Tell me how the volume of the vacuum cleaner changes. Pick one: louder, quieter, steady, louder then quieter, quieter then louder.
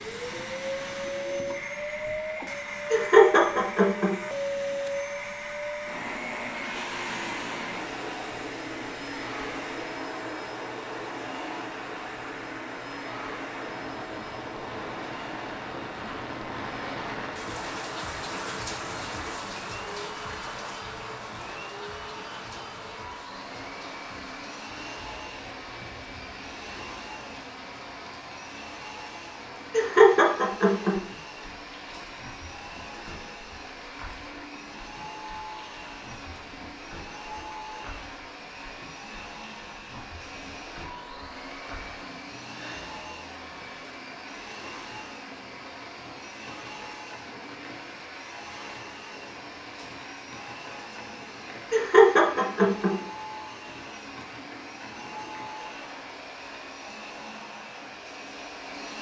quieter.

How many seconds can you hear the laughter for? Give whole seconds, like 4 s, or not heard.
4 s.